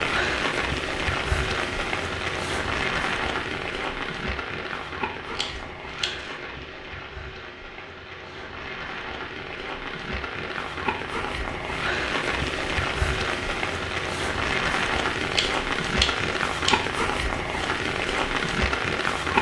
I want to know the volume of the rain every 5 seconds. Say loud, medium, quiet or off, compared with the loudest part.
loud, medium, loud, loud.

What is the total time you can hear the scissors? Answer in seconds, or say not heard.
3 s.